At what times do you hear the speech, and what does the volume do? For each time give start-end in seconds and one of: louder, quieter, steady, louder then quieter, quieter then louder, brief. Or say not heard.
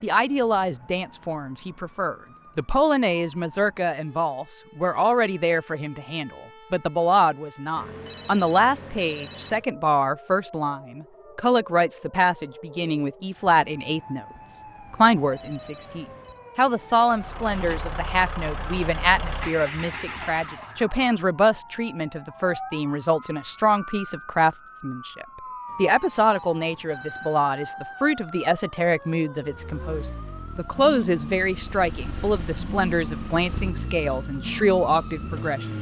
0.0-35.6 steady.